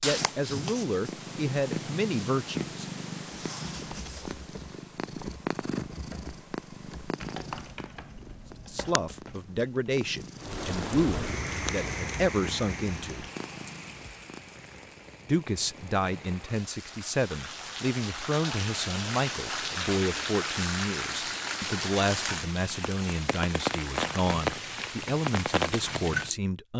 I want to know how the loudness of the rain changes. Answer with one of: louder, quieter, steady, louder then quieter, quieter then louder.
quieter then louder.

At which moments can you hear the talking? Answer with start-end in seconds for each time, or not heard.
0.0-2.9, 8.7-13.2, 15.2-26.7.